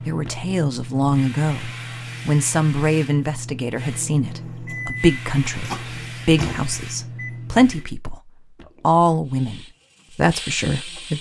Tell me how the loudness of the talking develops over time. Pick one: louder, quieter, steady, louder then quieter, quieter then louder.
steady.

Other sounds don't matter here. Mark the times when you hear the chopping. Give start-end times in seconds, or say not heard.
not heard.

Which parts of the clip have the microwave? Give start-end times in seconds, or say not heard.
3.8-8.0.